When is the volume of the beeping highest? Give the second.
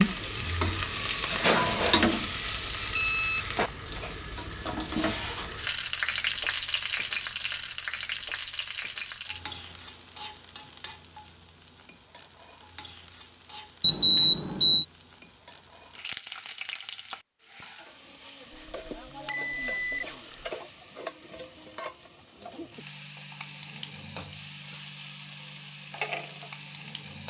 14 s.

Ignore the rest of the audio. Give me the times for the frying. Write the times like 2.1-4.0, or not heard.
0.0-27.2.